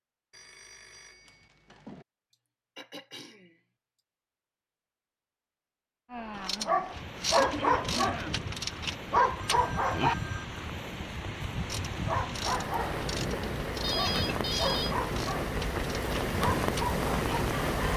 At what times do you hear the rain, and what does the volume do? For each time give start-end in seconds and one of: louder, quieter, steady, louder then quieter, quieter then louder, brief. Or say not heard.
6.0-17.9 louder.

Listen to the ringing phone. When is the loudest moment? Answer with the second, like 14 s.
14 s.